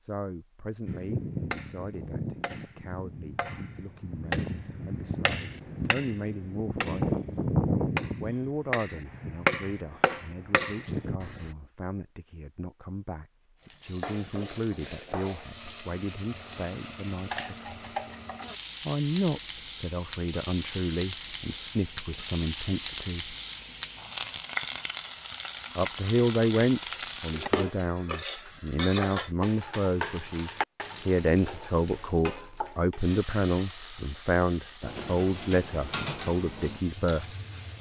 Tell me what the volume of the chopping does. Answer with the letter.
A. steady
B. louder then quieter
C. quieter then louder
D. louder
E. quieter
D.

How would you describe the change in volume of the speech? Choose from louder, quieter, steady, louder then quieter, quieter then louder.
louder.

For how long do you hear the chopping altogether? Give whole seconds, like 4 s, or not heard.
11 s.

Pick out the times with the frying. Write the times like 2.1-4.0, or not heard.
13.6-37.7.